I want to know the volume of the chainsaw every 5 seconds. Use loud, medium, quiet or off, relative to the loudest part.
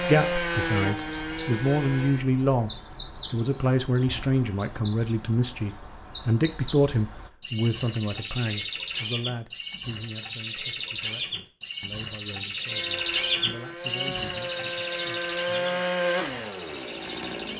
loud, off, medium, loud.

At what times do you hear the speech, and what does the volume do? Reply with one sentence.
You can hear the speech briefly from 0.0 to 2.7 s; and from 3.3 to 15.8 s, getting quieter.